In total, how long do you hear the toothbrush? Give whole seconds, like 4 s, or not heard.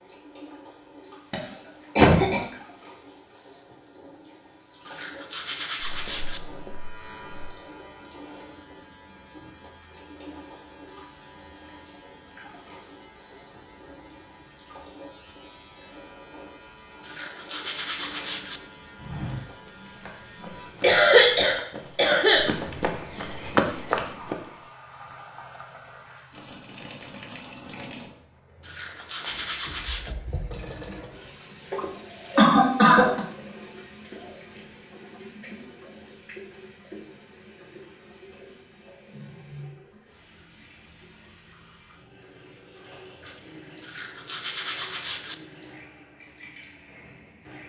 6 s.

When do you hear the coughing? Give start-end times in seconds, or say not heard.
1.3-2.5, 20.8-22.4, 32.4-33.2.